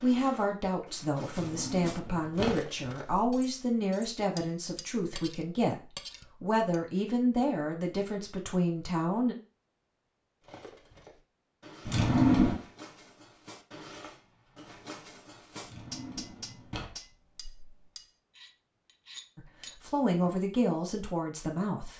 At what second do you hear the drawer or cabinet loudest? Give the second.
12 s.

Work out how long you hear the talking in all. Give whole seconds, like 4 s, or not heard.
12 s.